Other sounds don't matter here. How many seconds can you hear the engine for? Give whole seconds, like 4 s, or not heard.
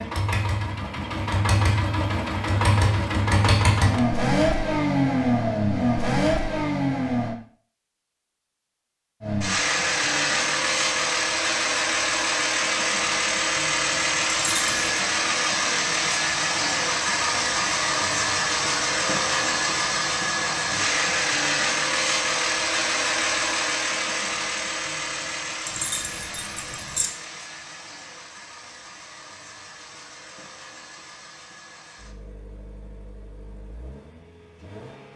33 s.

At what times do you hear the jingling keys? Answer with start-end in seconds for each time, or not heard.
14.3-14.9, 25.6-27.1.